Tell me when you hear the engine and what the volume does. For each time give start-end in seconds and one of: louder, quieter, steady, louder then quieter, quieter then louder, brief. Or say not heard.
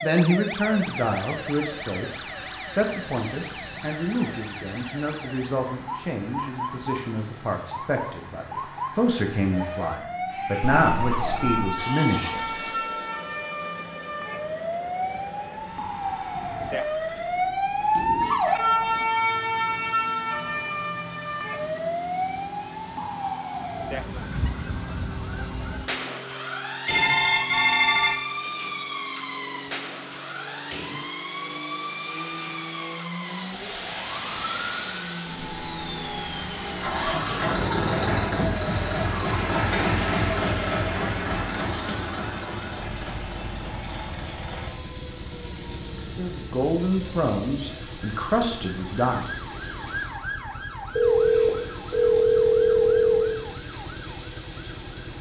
0.1-55.1 louder then quieter.